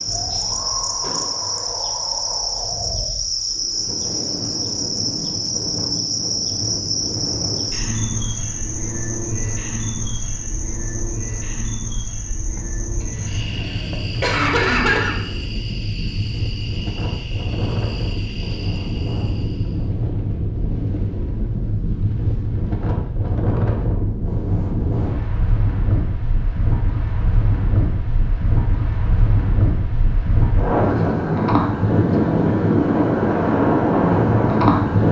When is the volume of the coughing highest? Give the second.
15 s.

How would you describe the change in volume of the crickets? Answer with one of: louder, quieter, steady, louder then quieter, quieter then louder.
quieter.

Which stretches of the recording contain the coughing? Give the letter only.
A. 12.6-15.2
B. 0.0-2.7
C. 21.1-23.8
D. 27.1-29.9
A.